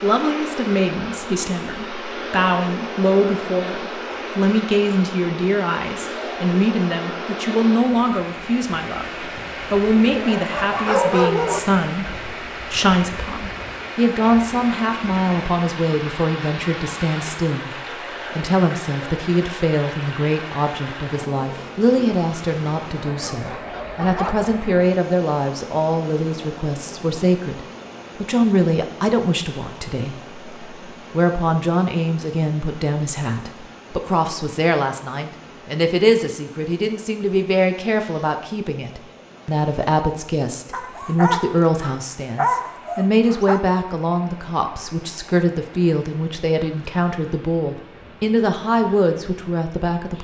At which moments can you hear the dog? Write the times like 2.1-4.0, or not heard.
10.0-11.6, 23.2-24.5, 40.7-43.6.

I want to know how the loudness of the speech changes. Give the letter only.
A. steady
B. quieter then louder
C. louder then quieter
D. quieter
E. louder
A.